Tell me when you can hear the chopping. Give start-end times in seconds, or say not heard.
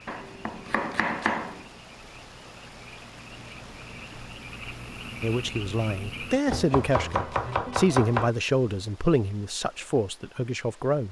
0.1-1.6, 6.5-8.3.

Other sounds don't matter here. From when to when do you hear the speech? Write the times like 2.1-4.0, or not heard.
5.2-11.0.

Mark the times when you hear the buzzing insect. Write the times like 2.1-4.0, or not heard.
not heard.